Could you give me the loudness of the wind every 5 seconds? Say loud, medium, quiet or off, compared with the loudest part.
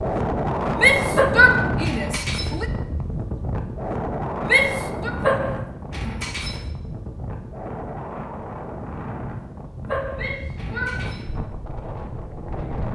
loud, medium, medium.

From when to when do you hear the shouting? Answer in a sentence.
The shouting can be heard from 0.8 to 2.6 s, from 4.5 to 5.1 s and from 10.2 to 10.9 s.